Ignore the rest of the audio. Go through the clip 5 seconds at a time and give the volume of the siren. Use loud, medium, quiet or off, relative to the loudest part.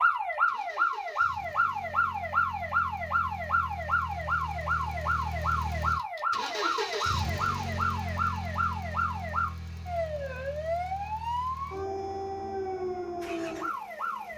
loud, loud, medium.